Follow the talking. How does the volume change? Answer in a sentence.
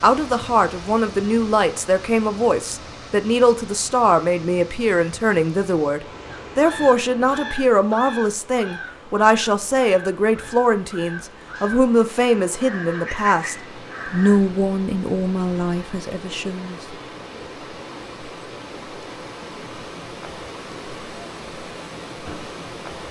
The volume of the talking stays about the same.